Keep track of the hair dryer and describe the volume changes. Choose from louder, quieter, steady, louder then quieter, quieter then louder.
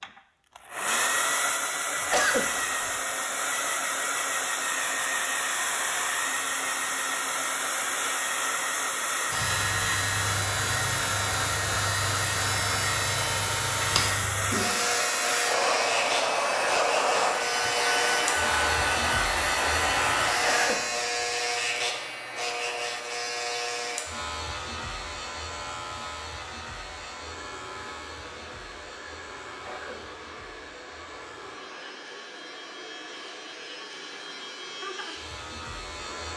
quieter.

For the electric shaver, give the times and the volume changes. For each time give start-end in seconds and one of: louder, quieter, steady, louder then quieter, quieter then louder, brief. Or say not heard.
9.3-36.3 quieter.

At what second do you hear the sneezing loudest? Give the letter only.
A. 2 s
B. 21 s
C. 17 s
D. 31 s
A.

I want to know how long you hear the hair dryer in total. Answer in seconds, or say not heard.
36 s.